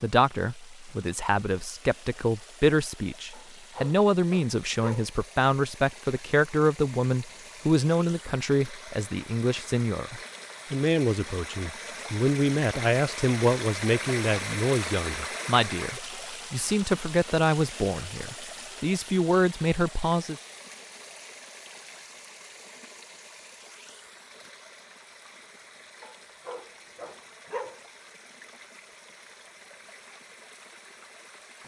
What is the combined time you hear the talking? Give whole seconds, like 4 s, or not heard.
20 s.